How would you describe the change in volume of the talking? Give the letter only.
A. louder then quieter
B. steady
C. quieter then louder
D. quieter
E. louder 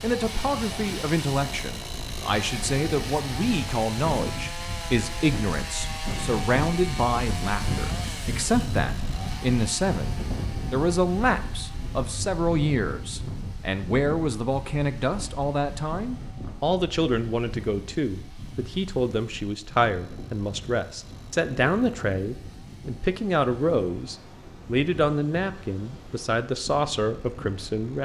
B.